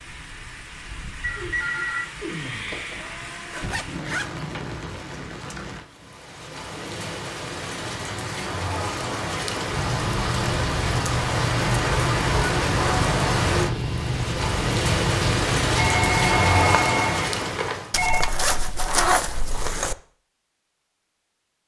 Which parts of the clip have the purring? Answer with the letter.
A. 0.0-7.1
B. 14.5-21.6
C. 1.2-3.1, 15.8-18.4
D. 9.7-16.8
D.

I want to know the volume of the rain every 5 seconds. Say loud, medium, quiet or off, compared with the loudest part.
quiet, medium, loud, loud, off.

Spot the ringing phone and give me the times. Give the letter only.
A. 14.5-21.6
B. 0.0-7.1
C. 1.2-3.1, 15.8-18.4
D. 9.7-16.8
C.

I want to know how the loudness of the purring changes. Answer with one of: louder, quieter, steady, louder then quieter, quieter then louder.
steady.